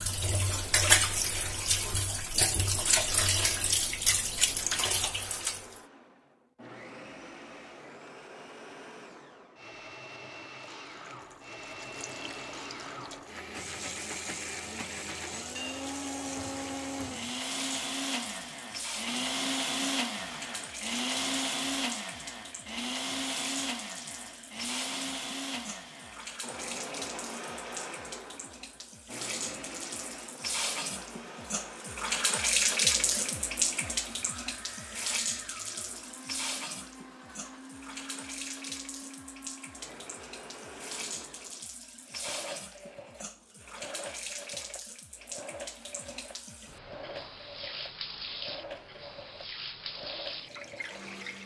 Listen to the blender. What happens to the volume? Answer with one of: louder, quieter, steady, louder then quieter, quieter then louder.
louder then quieter.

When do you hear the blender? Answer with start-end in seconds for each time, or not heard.
0.1-51.4.